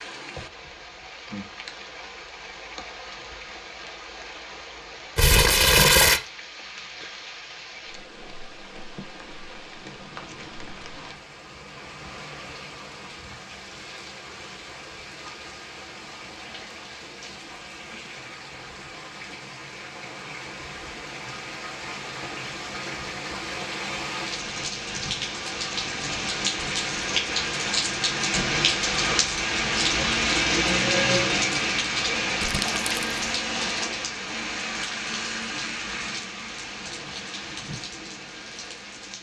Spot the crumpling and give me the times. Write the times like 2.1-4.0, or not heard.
5.2-6.2, 32.4-33.2.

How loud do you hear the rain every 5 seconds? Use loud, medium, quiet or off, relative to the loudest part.
quiet, quiet, quiet, quiet, medium, loud, loud, medium.